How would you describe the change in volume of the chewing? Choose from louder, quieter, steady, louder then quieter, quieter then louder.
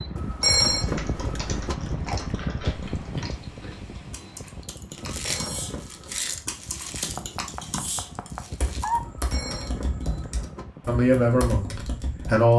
louder then quieter.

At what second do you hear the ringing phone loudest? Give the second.
1 s.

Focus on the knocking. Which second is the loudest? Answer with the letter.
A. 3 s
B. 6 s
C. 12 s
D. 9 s
D.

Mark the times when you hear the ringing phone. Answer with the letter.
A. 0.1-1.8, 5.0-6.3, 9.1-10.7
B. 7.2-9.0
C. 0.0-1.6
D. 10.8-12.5
A.